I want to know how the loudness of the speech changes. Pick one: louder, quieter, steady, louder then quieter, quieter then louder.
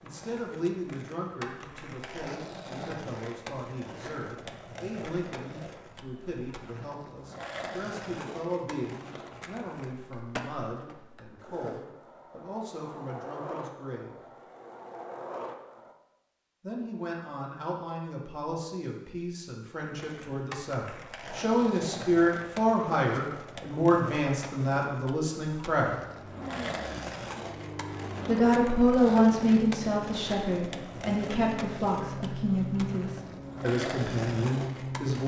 louder.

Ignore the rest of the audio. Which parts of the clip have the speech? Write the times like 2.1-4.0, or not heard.
0.0-14.2, 16.6-26.0, 28.2-35.2.